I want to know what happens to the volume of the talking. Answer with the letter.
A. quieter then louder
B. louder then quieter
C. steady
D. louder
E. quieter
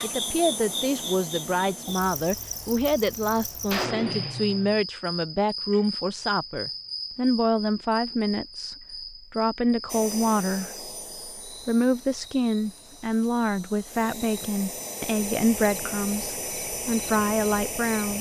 C.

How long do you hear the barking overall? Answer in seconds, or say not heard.
not heard.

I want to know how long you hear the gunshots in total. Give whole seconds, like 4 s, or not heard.
2 s.